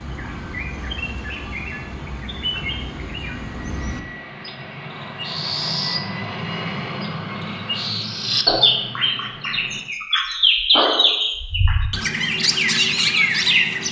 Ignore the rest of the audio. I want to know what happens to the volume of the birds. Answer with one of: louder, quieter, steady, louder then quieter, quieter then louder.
louder.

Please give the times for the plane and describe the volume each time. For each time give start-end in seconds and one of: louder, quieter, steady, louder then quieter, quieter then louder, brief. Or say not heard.
0.0-9.8 louder then quieter.